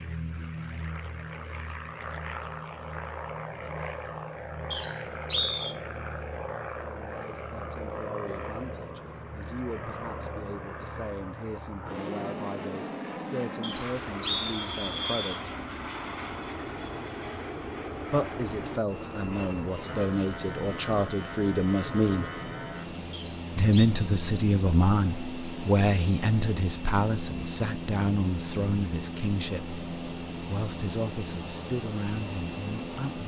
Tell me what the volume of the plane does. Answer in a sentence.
The volume of the plane stays about the same.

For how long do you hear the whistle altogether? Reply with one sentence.
The whistle can be heard for 4 seconds in total.